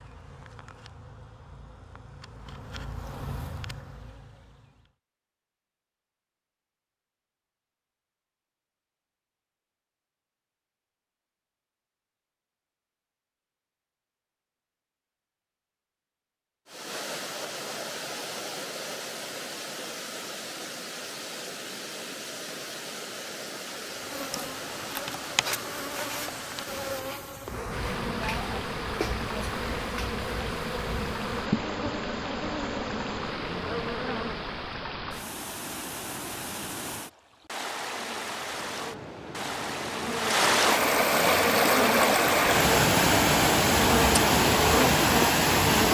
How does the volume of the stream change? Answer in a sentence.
The loudness of the stream goes up.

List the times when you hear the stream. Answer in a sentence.
You can hear the stream from 16.6 to 45.8 s.